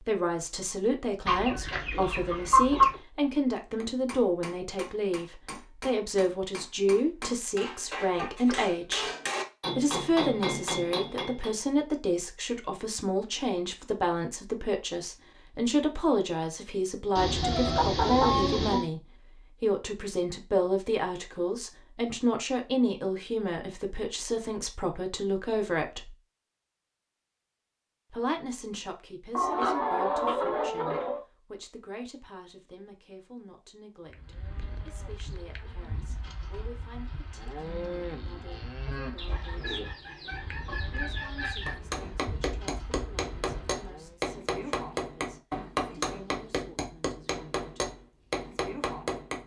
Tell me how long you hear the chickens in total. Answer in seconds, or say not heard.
8 s.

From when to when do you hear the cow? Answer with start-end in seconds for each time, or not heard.
34.0-44.1.